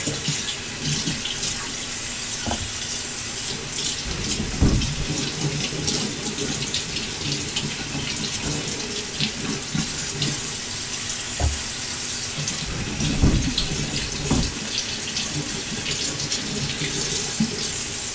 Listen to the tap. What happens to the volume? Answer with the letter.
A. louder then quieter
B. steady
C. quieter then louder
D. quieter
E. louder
B.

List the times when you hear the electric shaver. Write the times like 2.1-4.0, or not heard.
not heard.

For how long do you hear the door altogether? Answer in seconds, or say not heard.
3 s.